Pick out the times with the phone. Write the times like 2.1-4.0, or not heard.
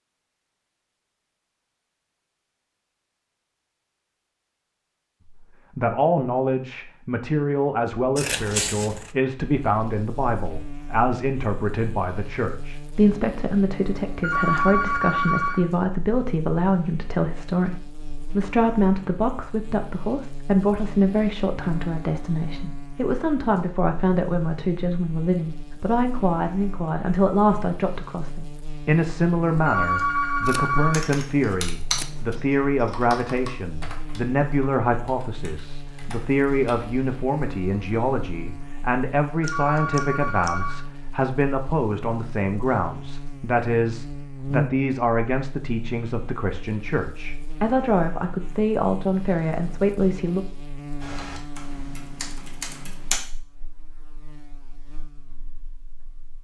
14.2-15.7, 29.6-31.1, 39.4-40.9.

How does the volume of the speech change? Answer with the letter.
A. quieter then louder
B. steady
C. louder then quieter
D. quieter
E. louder
B.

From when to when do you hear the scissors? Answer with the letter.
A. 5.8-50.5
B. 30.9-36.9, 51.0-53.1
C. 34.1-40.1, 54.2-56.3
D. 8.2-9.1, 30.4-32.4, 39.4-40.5
D.